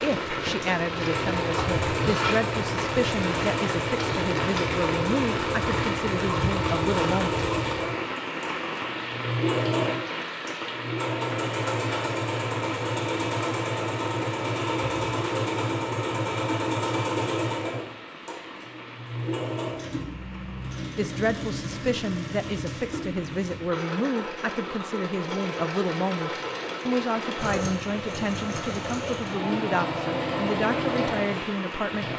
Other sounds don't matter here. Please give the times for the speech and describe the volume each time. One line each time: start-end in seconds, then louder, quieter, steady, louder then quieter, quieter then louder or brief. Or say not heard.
0.0-7.3 steady
20.9-32.1 steady.